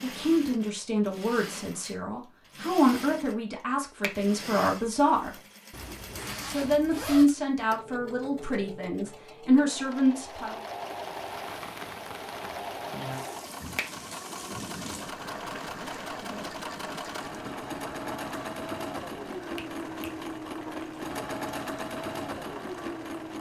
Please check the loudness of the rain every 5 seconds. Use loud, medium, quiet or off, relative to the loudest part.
off, off, loud, loud, loud.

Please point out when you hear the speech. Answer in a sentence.
The speech can be heard from 0.0 to 5.3 s and from 6.5 to 10.6 s.